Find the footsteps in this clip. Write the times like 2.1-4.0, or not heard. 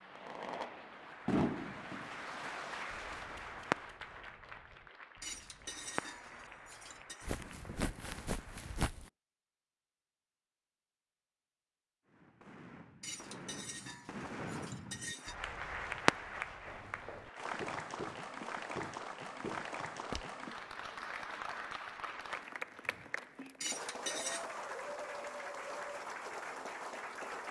7.2-9.1, 16.6-20.2.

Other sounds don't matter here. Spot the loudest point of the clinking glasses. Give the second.
24 s.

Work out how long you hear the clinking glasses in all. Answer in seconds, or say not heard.
5 s.